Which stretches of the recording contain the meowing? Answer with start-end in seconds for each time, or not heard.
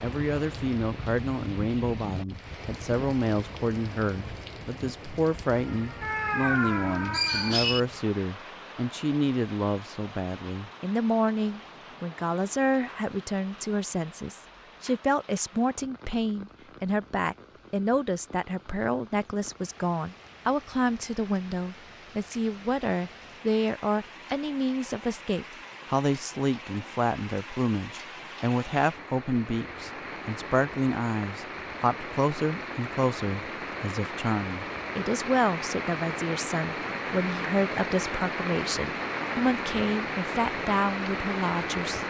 6.0-7.8.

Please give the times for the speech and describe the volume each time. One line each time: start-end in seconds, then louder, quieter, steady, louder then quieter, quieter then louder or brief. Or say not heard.
0.0-42.0 steady.